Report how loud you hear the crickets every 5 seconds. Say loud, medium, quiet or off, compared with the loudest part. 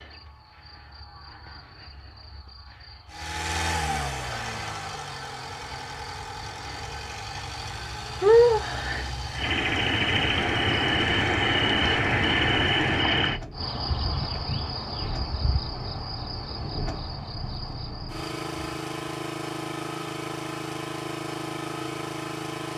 quiet, loud, loud, quiet, off.